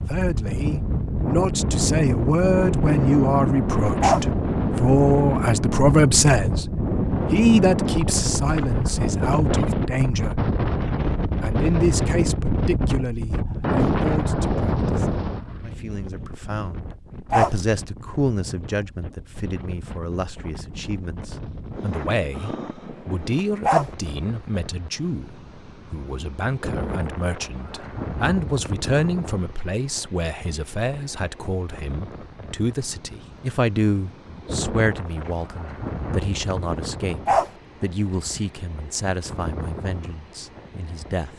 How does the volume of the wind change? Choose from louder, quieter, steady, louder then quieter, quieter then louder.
quieter.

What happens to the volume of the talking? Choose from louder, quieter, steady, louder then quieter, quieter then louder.
quieter.